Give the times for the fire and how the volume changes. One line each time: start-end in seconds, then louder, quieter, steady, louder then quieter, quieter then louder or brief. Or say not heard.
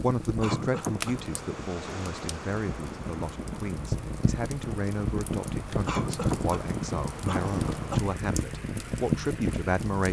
0.0-10.0 louder.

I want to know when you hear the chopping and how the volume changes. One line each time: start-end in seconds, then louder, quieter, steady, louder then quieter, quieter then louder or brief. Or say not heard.
not heard.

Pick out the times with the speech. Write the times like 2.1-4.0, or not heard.
0.0-10.0.